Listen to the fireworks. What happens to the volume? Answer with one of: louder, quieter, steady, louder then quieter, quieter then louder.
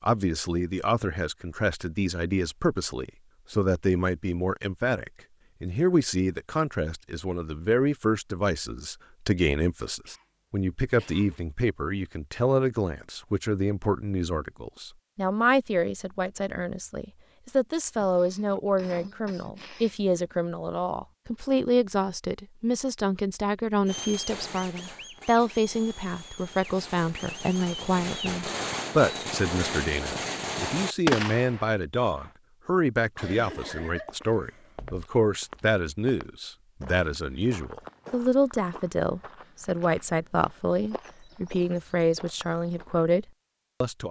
louder.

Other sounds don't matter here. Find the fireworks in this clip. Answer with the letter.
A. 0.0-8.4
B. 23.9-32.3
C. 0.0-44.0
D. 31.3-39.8
B.